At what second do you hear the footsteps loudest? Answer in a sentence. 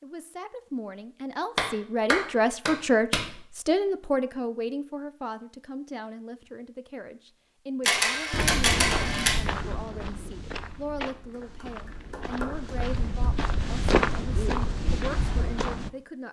The loudest moment of the footsteps is at 14 seconds.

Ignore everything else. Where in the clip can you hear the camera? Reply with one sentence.
You can hear the camera from 7.8 to 9.3 s.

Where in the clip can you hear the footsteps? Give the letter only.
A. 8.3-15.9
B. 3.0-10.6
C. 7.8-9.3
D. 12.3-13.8
A.